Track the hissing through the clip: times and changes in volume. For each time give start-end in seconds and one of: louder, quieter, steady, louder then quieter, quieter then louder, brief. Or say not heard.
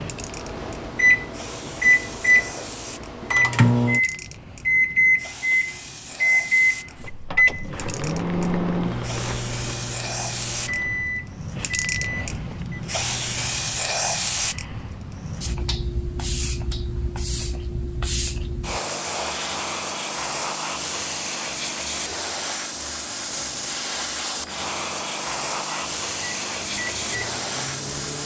0.0-28.2 louder.